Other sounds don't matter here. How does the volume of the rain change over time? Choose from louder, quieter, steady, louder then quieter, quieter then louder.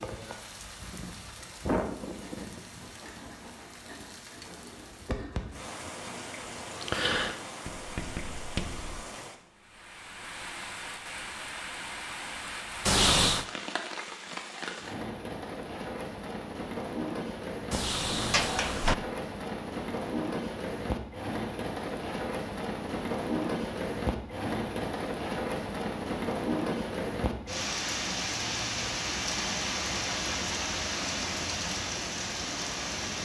louder.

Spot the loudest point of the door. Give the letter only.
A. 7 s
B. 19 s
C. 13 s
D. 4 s
C.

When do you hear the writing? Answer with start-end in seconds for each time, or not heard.
2.1-9.1.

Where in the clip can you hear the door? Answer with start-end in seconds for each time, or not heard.
12.8-13.4, 17.7-18.9.